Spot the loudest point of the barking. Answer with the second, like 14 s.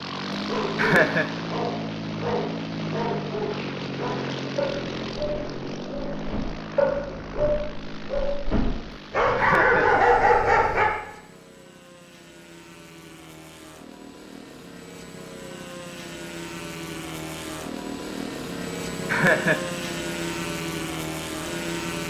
10 s.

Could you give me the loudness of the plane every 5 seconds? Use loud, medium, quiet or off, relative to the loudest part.
loud, medium, quiet, loud, loud.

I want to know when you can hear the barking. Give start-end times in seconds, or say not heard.
0.3-10.8.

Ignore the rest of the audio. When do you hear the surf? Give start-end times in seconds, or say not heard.
not heard.